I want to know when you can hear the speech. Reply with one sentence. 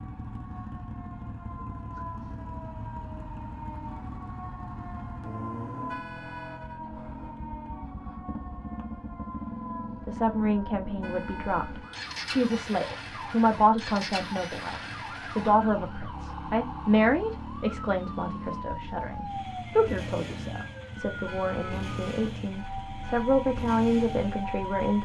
The speech can be heard from 10.1 to 24.9 s.